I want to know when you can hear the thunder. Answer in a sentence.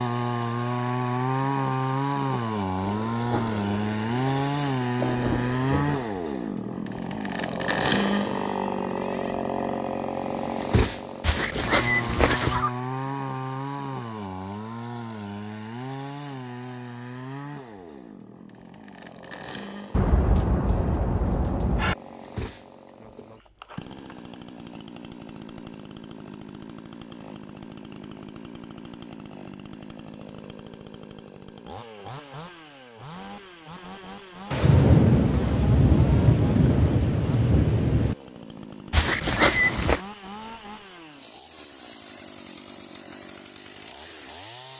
The thunder can be heard from 2.8 to 6.0 s, from 19.9 to 21.9 s and from 34.5 to 38.1 s.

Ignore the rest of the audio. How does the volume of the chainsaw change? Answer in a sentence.
The volume of the chainsaw goes down.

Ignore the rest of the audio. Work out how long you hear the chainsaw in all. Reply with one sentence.
The chainsaw can be heard for 45 seconds in total.